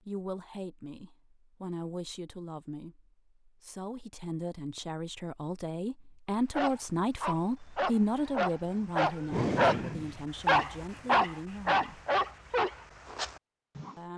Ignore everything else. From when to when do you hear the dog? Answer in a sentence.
The dog can be heard from 6.5 to 13.9 s.